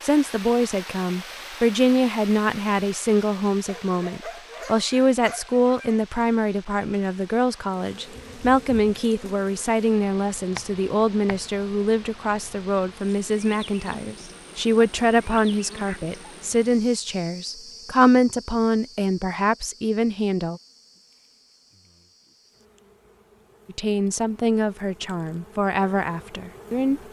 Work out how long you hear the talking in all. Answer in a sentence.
You can hear the talking for 24 seconds altogether.